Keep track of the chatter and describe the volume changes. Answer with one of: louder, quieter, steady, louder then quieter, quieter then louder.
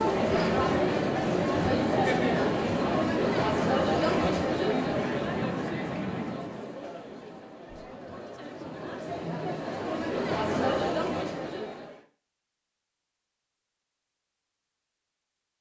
quieter then louder.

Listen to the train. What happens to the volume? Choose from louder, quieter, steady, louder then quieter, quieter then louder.
steady.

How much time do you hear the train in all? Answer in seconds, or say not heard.
7 s.